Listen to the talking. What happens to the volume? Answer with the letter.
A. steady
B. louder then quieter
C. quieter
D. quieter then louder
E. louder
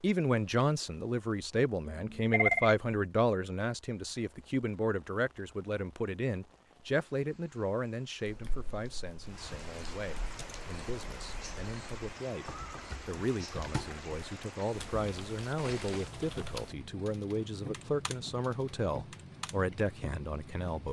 D.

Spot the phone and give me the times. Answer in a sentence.
The phone can be heard from 1.9 to 2.8 s.